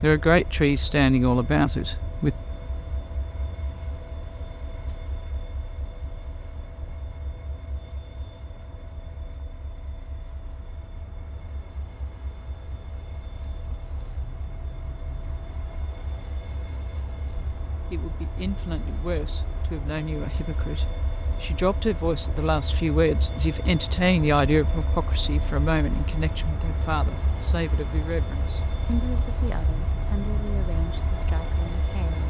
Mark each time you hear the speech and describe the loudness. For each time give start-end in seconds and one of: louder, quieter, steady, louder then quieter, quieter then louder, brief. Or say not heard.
0.0-2.4 brief
17.9-32.2 louder then quieter.